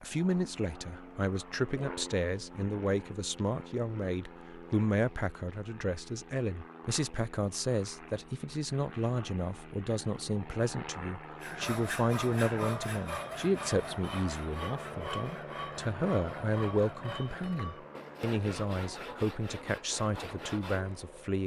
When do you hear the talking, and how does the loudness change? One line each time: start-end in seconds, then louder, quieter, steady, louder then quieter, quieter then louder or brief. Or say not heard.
0.0-21.4 steady.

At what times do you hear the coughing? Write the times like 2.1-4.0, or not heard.
not heard.